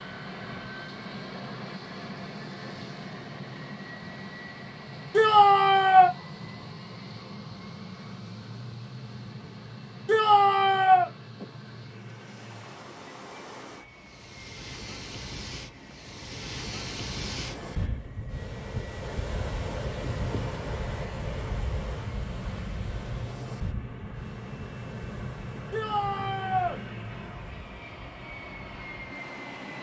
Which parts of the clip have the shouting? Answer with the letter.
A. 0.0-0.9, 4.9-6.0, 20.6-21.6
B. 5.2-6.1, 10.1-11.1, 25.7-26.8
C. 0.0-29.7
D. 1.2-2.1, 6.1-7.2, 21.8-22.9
B.